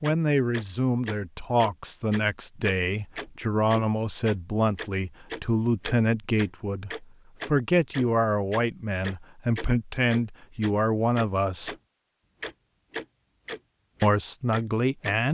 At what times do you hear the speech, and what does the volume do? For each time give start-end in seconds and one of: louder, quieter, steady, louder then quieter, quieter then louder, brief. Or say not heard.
0.0-11.8 steady
14.0-15.2 brief.